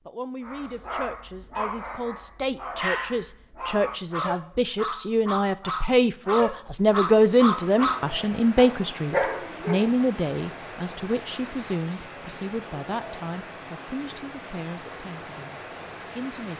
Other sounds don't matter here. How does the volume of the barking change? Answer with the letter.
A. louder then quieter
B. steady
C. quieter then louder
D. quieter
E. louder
E.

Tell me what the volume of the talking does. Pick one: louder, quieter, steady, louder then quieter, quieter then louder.
louder then quieter.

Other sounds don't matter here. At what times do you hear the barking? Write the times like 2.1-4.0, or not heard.
0.4-9.9.